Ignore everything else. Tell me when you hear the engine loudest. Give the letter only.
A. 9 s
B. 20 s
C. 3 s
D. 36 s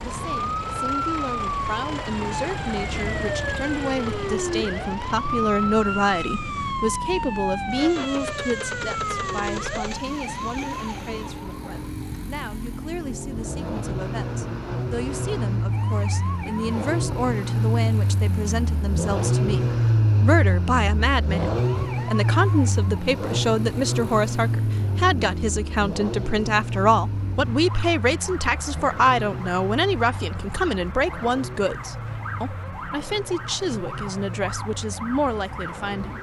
B.